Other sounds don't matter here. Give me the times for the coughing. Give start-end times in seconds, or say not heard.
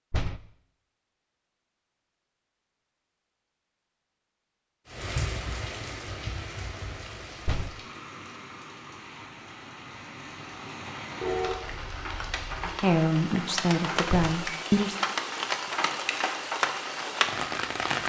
not heard.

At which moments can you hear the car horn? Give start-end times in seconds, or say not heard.
11.2-12.7.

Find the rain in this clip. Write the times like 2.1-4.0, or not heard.
4.8-18.0.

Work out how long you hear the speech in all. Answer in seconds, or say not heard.
2 s.